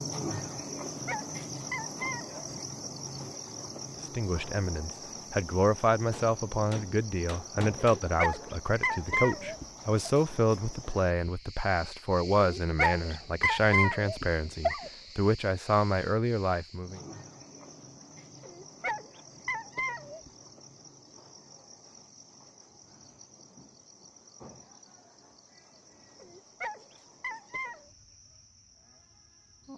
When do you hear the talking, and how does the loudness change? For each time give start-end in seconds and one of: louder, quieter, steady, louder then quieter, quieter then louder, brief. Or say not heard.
4.1-17.0 steady.